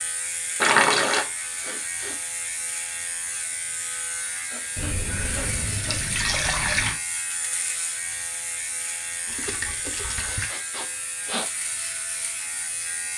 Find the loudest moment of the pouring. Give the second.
1 s.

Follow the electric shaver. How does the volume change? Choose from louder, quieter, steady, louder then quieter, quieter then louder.
steady.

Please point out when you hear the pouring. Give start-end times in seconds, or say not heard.
0.6-1.2, 4.8-7.0, 9.2-10.5.